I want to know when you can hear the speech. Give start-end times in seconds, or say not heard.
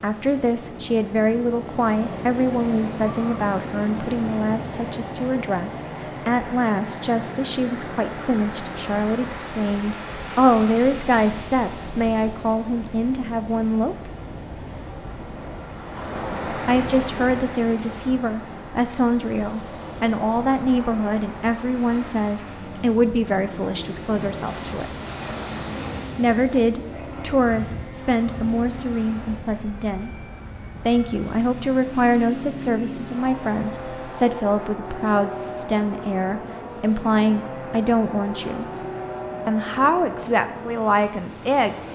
0.0-13.9, 16.6-24.9, 26.1-30.1, 30.9-38.6, 39.5-41.8.